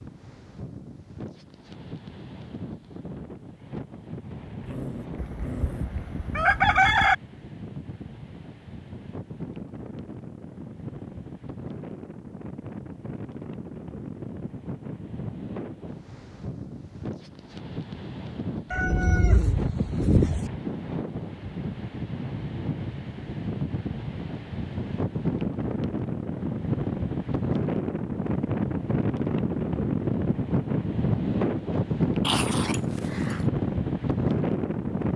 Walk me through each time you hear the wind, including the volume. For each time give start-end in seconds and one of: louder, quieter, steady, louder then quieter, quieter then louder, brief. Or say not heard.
0.0-35.1 louder.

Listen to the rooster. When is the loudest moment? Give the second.
7 s.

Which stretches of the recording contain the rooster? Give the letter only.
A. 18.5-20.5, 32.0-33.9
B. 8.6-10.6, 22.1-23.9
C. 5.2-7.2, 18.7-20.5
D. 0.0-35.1
C.